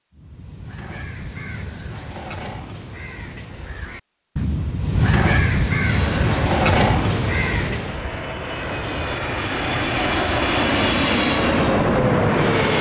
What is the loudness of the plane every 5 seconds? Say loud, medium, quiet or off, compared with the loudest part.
off, medium, loud.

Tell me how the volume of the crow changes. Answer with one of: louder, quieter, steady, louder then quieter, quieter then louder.
louder.